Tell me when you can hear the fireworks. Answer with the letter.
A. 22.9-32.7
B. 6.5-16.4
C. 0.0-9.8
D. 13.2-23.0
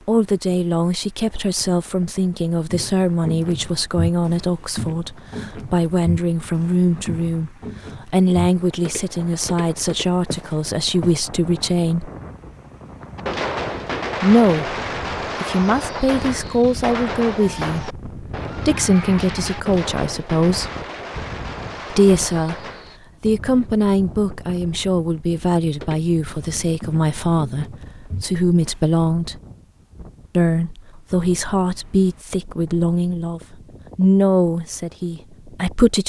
D.